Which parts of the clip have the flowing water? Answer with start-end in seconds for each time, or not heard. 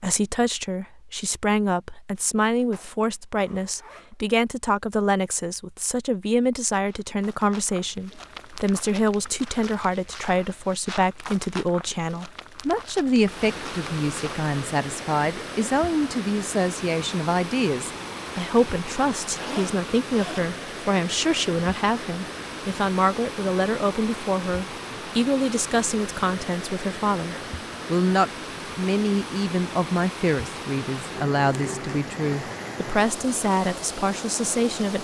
13.2-35.0.